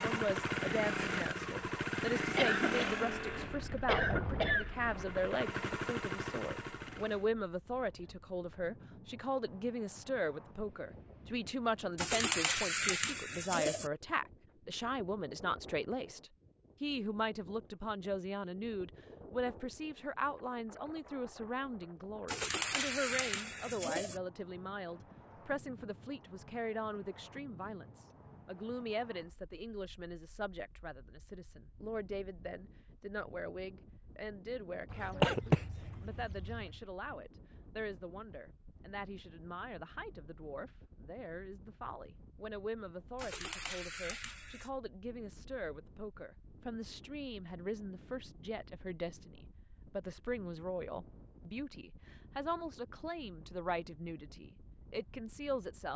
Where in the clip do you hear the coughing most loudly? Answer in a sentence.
The loudest moment of the coughing is at 35 seconds.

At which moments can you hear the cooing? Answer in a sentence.
You can hear the cooing from 11.9 to 13.9 s, from 22.2 to 24.2 s and from 43.1 to 44.7 s.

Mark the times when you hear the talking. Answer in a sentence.
You can hear the talking from 0.0 to 55.9 s.